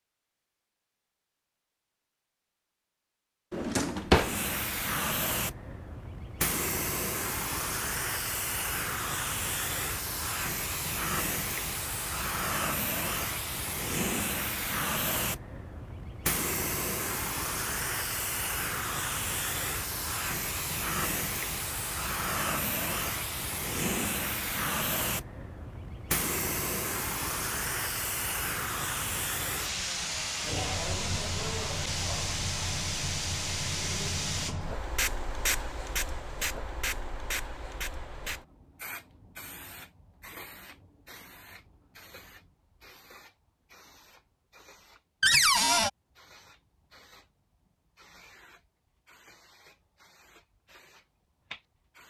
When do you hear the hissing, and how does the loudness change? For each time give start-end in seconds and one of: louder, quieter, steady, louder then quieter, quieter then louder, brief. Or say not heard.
4.1-52.0 quieter.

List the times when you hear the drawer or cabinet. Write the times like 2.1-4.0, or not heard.
3.5-4.3, 45.2-45.9.